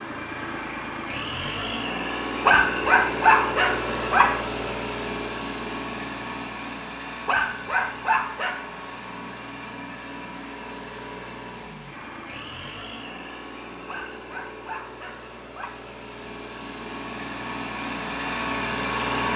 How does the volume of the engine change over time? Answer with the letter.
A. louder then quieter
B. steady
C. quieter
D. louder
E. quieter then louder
E.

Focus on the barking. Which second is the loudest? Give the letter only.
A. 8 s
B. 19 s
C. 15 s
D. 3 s
D.